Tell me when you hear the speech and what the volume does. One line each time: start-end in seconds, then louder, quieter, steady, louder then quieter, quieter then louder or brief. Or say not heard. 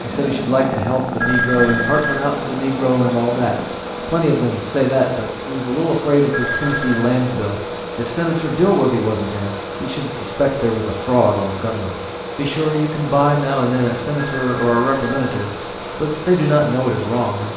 0.0-17.5 steady.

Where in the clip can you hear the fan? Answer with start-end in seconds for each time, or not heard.
0.0-17.5.